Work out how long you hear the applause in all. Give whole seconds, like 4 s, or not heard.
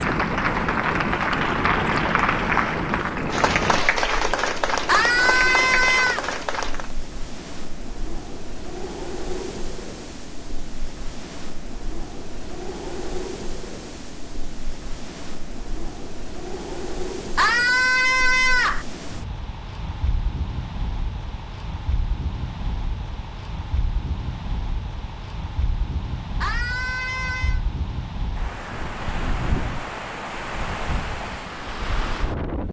7 s.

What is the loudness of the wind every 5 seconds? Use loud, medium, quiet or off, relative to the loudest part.
loud, medium, medium, medium, medium, medium, loud.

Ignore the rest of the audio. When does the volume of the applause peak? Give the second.
2 s.